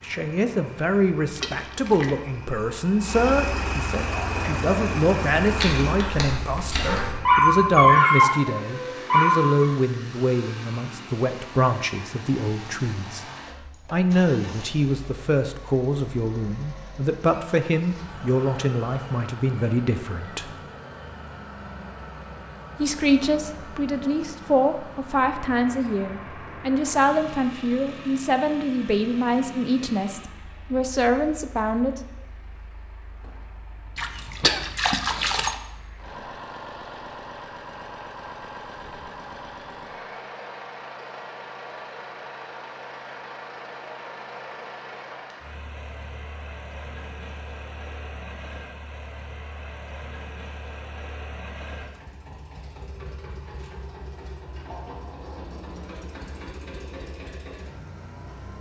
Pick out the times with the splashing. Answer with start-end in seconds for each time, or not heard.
1.4-2.2, 34.0-35.6.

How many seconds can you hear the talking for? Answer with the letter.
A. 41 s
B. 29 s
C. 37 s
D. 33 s
B.